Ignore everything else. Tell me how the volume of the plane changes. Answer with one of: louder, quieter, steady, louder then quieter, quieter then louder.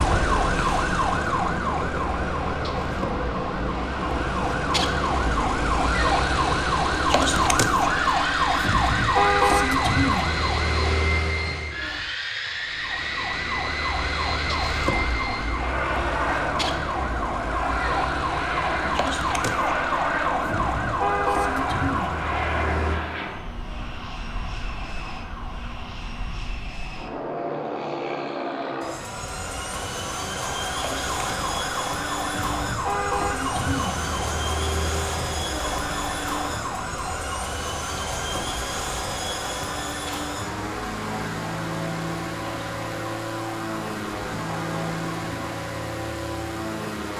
steady.